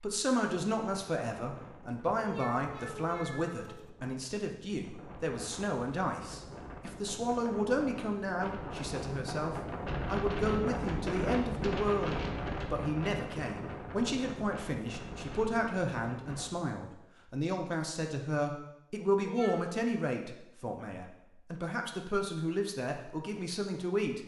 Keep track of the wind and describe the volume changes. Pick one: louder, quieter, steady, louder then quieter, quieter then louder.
louder then quieter.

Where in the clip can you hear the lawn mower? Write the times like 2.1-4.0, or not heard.
not heard.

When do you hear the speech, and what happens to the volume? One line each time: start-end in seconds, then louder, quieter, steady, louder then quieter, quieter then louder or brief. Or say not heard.
0.0-24.2 steady.